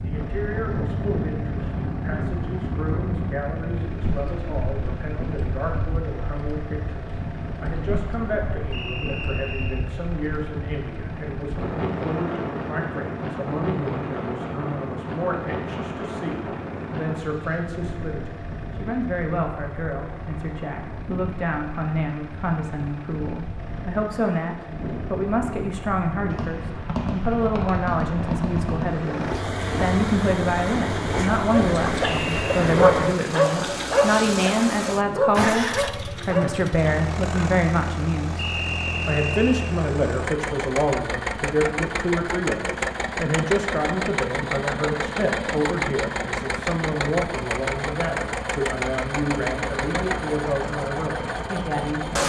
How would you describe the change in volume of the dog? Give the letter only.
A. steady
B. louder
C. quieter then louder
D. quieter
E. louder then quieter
D.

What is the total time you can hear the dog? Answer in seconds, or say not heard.
6 s.